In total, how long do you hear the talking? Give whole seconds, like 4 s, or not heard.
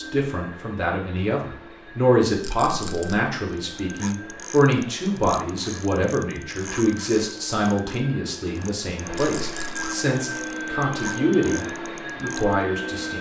13 s.